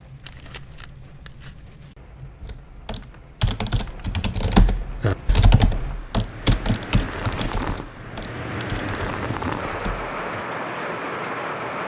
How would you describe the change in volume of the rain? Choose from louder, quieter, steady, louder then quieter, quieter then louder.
louder.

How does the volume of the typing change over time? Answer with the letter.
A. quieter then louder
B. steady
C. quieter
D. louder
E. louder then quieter
E.